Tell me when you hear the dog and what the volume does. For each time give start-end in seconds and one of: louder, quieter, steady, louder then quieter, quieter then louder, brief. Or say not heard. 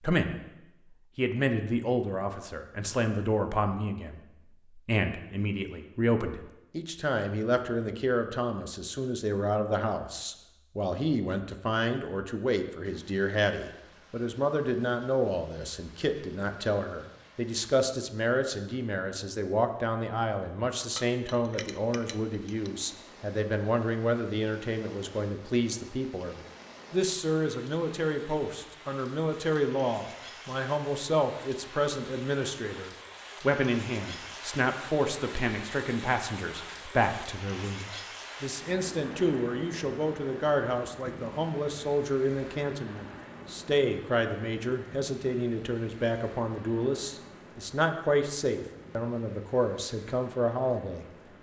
not heard.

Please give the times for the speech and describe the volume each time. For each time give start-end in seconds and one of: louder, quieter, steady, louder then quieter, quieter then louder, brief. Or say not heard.
0.0-0.5 brief
1.1-51.0 steady.